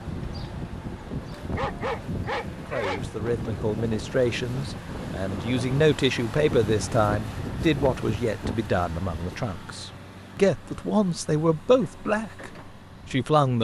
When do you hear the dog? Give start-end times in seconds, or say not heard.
1.6-3.0.